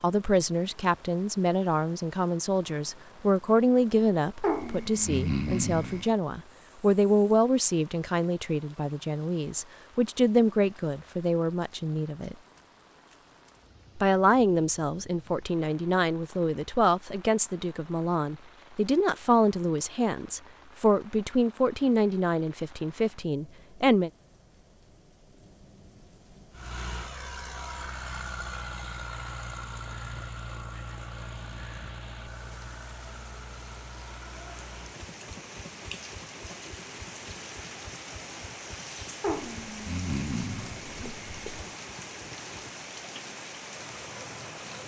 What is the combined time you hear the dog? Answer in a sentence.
The dog can be heard for 4 seconds in total.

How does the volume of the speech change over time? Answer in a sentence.
The volume of the speech stays about the same.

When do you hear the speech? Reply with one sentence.
The speech can be heard from 0.0 to 12.3 s and from 13.9 to 24.1 s.